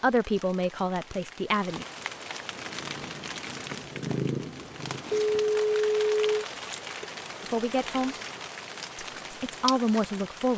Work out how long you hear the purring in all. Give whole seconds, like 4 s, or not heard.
3 s.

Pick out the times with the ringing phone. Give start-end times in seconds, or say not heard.
5.1-6.5.